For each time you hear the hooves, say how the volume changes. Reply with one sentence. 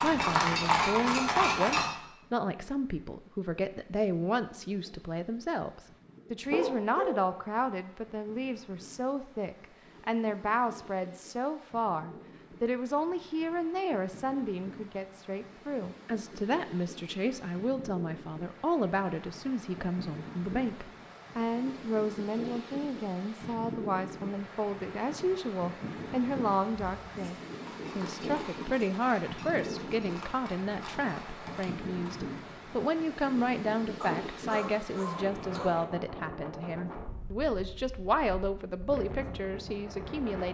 You can hear the hooves briefly from 0.0 to 1.9 s; and from 26.8 to 32.2 s, at a steady volume.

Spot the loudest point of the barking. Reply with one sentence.
The volume of the barking peaks at 7 seconds.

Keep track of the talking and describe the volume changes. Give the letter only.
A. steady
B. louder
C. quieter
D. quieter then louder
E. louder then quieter
A.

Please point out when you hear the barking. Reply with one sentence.
The barking can be heard from 6.4 to 7.3 s and from 34.0 to 35.8 s.